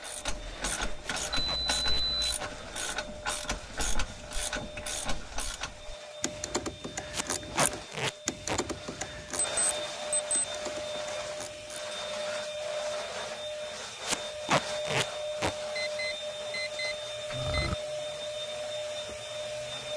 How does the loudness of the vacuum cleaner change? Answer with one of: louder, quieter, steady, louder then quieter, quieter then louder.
louder.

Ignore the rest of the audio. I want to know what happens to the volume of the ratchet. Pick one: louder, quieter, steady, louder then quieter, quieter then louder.
quieter.